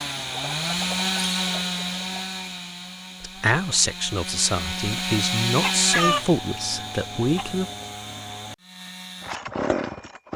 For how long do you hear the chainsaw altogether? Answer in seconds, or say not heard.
10 s.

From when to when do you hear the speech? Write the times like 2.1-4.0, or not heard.
3.2-7.7.